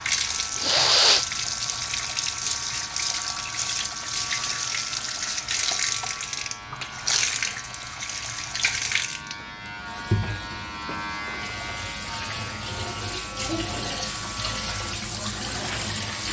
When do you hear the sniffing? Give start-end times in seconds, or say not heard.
0.6-1.8.